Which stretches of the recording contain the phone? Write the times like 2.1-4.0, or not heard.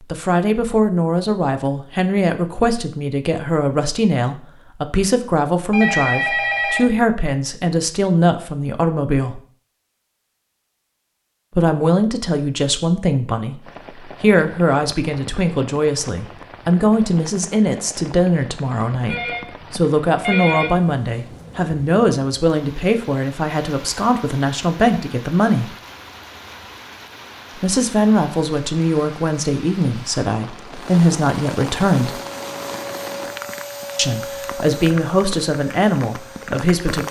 5.7-6.9, 19.1-20.7.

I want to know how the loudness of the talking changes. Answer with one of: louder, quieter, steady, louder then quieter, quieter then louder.
steady.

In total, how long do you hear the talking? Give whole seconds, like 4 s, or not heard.
31 s.